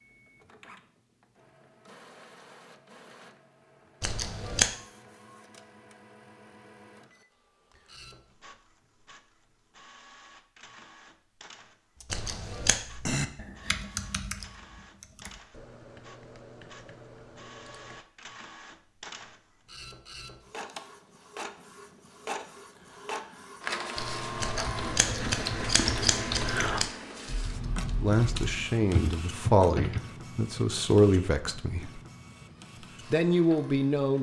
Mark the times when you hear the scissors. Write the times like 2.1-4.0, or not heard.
4.0-4.7, 12.1-12.8, 24.4-26.9.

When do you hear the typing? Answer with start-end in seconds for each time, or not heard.
11.9-18.0, 23.9-30.0.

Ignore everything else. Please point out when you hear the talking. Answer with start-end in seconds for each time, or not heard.
28.0-32.0, 33.1-34.1.